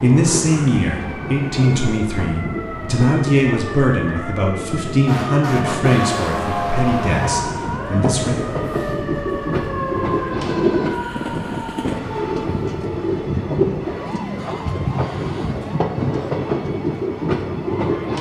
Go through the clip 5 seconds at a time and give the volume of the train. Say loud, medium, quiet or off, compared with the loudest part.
medium, loud, loud, loud.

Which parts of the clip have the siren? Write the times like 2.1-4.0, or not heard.
0.1-18.1.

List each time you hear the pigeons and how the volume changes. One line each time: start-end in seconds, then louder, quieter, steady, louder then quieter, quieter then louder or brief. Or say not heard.
not heard.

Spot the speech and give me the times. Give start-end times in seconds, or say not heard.
0.0-8.4.